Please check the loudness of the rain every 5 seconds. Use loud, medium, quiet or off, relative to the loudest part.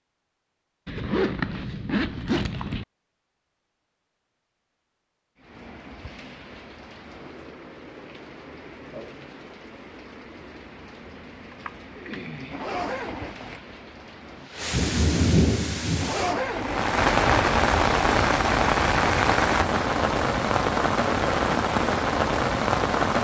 off, quiet, quiet, loud, loud.